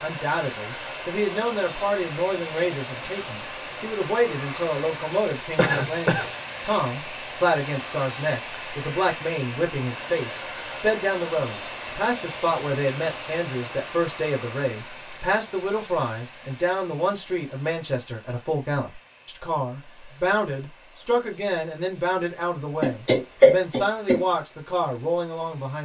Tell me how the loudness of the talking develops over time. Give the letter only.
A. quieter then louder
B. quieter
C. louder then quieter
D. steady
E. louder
D.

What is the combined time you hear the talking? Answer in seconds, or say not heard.
26 s.